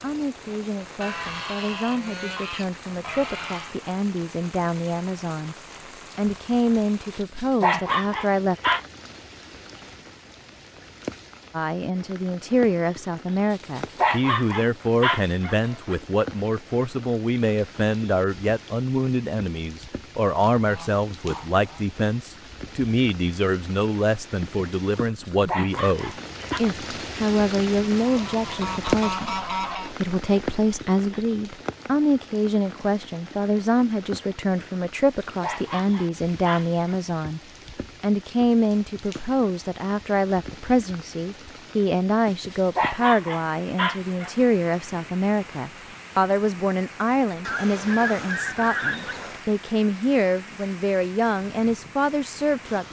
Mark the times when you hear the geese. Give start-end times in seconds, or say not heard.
1.0-3.8, 20.6-21.9, 27.9-29.9, 47.5-49.5.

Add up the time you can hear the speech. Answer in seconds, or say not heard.
49 s.